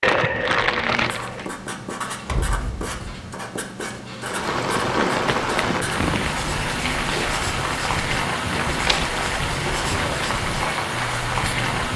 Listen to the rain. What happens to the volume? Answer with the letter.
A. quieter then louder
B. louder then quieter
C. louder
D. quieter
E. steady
E.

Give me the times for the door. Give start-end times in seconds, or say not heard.
2.2-3.3.